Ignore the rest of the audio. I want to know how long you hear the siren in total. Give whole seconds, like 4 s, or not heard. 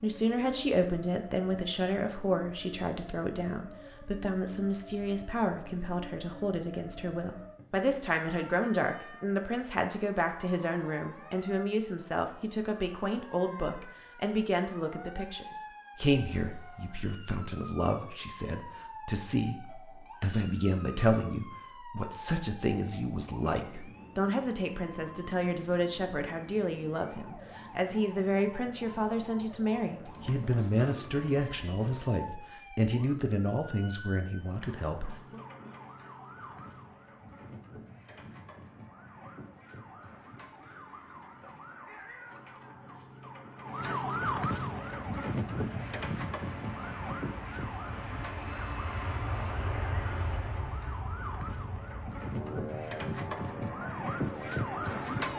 55 s.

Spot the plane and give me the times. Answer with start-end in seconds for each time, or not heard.
44.8-55.3.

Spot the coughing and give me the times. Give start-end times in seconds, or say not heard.
35.0-35.8.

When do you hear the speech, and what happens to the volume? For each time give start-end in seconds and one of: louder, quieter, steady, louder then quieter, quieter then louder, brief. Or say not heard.
0.0-35.2 steady.